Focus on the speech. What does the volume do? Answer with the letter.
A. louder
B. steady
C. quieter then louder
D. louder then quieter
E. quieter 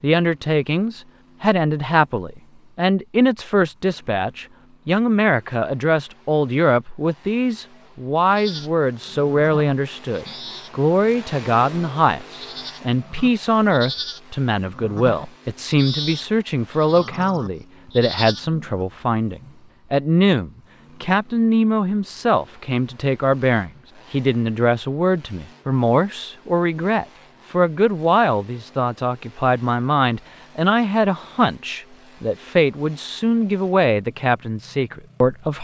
B.